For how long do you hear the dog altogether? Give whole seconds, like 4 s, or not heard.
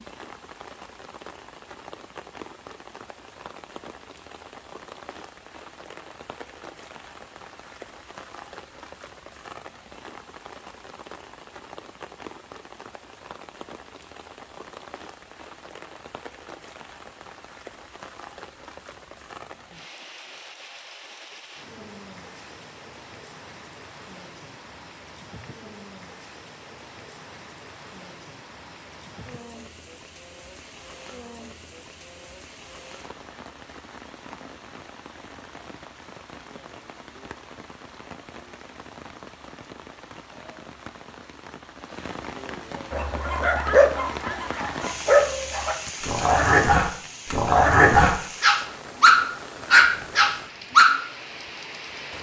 8 s.